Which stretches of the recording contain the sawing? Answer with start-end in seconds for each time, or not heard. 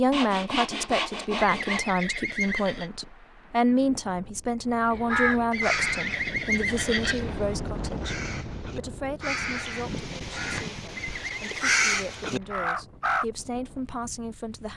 0.1-1.9.